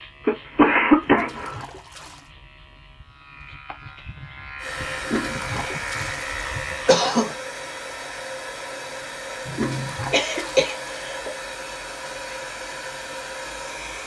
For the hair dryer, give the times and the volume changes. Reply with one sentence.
You can hear the hair dryer from 4.5 to 14.0 s, at a steady volume.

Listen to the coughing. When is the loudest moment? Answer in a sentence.
The loudest moment of the coughing is at 1 second.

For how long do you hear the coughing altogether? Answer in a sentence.
You can hear the coughing for 4 seconds altogether.